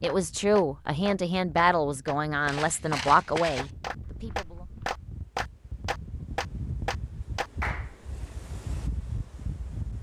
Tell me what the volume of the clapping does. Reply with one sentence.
The volume of the clapping goes up.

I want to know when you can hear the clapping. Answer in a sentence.
You can hear the clapping from 0.0 to 8.1 s.